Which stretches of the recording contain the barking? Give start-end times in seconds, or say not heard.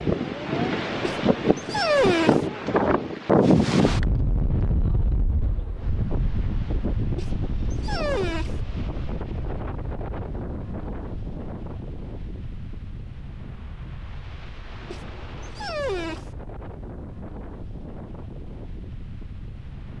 1.0-2.4, 7.2-8.6, 14.9-16.3.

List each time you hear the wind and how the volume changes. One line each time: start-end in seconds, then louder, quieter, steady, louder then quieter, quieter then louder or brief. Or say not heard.
0.0-19.9 quieter.